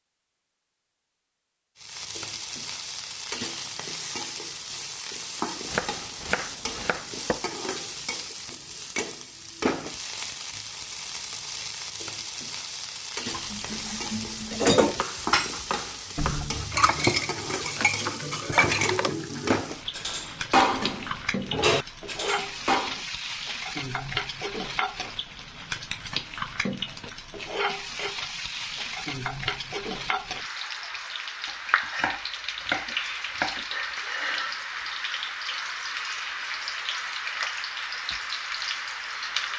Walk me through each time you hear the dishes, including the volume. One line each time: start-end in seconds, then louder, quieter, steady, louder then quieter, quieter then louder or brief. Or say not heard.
13.3-23.0 steady.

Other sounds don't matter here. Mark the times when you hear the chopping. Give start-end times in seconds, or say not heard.
5.7-7.5, 14.9-16.5, 31.4-33.6.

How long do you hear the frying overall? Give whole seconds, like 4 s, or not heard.
38 s.